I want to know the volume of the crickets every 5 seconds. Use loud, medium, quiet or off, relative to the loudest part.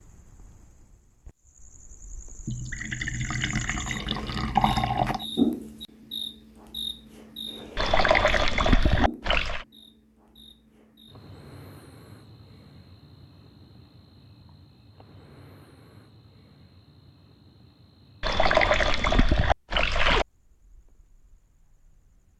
quiet, loud, quiet, quiet, quiet.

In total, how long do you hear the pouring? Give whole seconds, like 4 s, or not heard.
7 s.